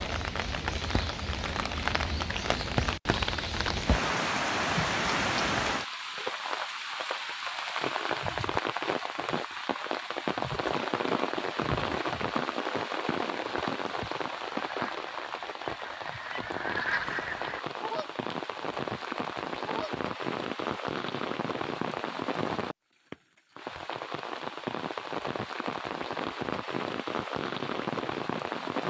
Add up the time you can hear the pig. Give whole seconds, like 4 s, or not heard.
not heard.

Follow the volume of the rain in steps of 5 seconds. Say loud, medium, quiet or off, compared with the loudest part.
loud, loud, loud, medium, loud, loud.